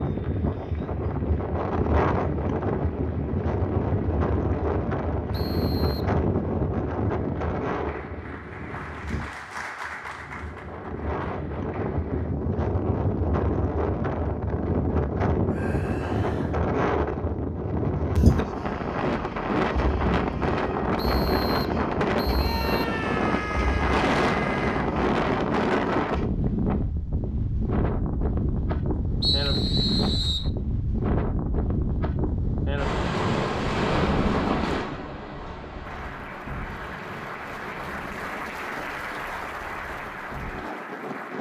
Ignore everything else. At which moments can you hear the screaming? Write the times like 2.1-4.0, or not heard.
15.4-16.6, 22.4-24.9.